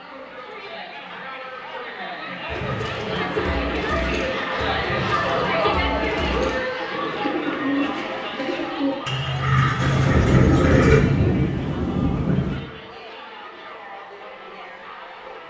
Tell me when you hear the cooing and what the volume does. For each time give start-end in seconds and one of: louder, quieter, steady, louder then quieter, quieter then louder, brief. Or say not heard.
2.5-11.0 louder.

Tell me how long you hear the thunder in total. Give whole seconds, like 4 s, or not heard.
3 s.